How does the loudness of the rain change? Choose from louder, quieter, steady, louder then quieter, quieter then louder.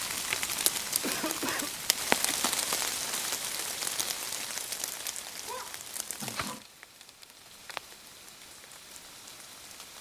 quieter.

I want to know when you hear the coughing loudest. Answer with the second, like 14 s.
1 s.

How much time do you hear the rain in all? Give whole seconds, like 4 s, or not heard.
10 s.